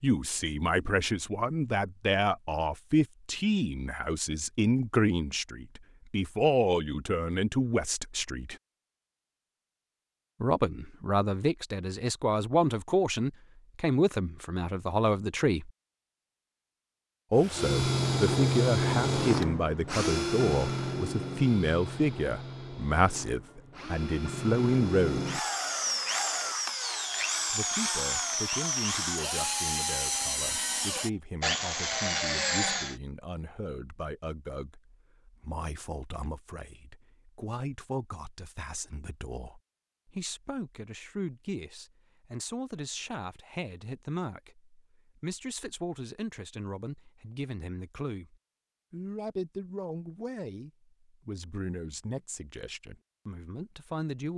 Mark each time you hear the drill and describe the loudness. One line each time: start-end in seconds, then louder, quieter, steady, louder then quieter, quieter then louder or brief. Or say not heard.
17.4-33.0 quieter then louder.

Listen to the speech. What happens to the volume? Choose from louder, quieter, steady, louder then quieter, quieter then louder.
quieter.